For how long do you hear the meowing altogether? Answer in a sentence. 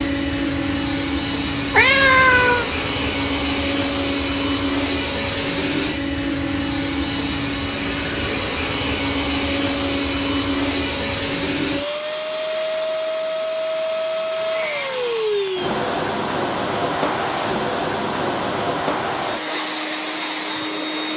You can hear the meowing for 2 seconds altogether.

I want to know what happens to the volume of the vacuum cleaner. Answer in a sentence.
The loudness of the vacuum cleaner stays about the same.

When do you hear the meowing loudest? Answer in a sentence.
The loudest moment of the meowing is at 2 seconds.